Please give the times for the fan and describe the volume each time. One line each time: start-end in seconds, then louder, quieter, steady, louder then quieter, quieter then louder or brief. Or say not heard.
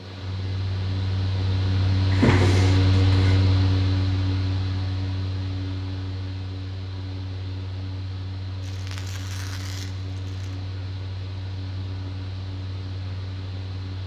0.0-14.0 quieter.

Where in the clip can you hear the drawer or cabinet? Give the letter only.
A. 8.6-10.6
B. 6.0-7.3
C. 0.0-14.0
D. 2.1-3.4
D.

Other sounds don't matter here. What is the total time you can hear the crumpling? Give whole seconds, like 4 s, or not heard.
2 s.